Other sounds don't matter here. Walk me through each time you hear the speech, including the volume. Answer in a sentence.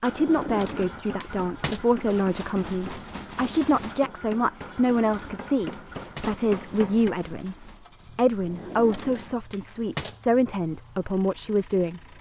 The speech can be heard from 0.0 to 12.0 s, at a steady volume.